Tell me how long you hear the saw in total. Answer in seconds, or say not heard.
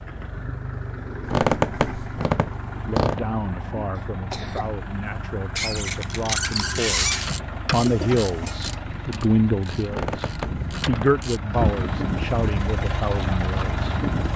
not heard.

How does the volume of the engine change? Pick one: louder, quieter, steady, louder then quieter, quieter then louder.
louder.